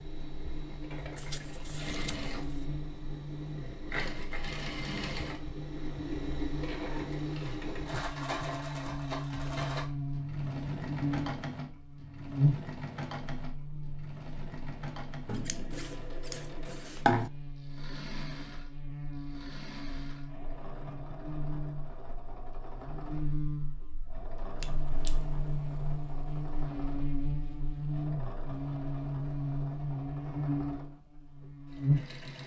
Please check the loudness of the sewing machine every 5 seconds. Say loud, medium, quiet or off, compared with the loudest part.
loud, loud, loud, medium, medium, medium, medium.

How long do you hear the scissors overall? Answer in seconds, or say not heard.
4 s.